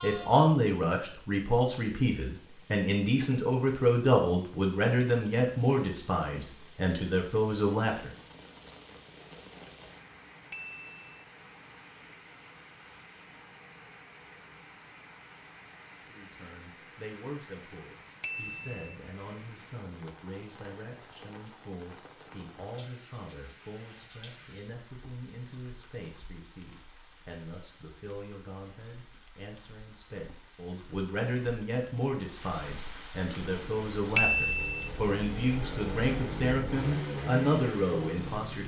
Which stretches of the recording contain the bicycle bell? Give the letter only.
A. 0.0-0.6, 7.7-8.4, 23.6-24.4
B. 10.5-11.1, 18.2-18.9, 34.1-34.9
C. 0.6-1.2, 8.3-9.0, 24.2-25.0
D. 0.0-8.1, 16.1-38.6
B.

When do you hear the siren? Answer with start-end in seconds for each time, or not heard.
not heard.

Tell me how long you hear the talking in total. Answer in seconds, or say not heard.
31 s.